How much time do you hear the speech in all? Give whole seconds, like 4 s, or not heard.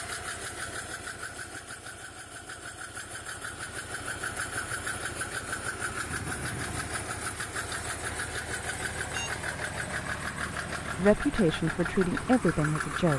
2 s.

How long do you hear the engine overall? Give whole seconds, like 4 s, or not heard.
13 s.